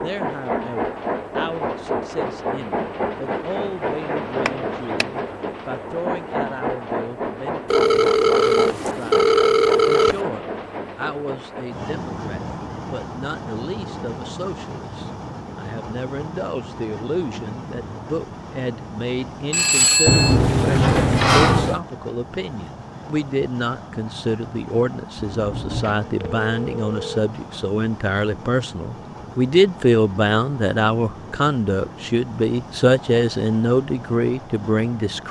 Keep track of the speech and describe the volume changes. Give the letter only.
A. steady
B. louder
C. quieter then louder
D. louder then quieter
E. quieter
B.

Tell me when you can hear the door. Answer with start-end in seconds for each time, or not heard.
4.5-5.0, 20.1-21.8, 25.3-25.9.